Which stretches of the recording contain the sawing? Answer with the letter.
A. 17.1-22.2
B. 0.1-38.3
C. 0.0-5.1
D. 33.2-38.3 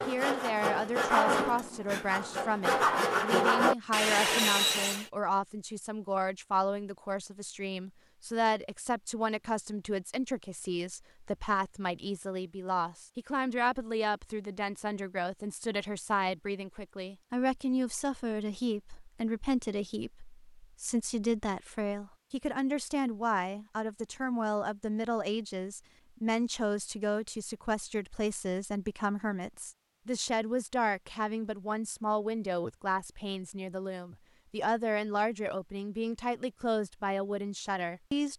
C.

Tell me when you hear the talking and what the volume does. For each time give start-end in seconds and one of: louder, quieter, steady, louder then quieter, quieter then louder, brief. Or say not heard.
0.1-38.3 steady.